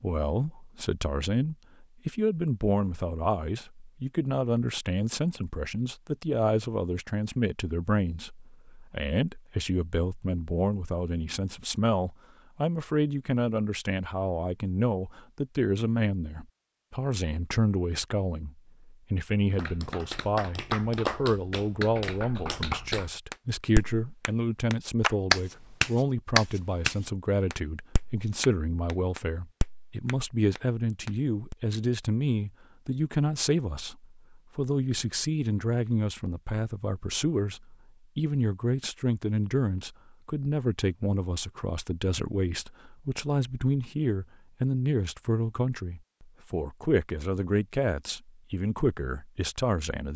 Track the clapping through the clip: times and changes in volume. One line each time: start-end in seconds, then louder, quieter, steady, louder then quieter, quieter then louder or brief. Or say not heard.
19.6-31.6 louder then quieter.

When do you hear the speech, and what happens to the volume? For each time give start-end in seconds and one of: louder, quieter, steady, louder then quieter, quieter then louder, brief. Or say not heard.
0.0-50.1 steady.